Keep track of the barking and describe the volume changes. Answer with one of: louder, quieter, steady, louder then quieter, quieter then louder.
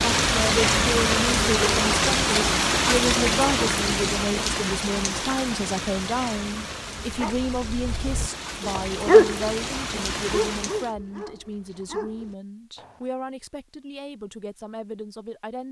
louder then quieter.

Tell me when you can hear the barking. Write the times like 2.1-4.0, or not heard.
7.0-13.1.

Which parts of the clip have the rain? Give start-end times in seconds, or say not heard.
0.0-10.9.